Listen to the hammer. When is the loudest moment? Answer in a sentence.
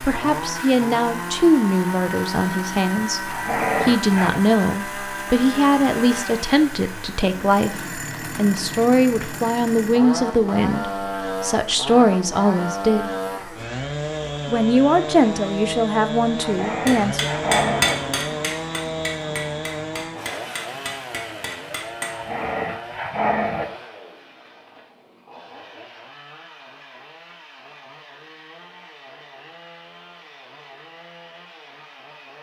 The loudest moment of the hammer is at 18 seconds.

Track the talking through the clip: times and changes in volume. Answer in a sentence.
You can hear the talking from 0.0 to 13.1 s, at a steady volume; and briefly from 14.4 to 17.3 s.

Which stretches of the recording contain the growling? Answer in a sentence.
You can hear the growling from 3.2 to 4.4 s, from 16.4 to 17.9 s and from 22.1 to 23.6 s.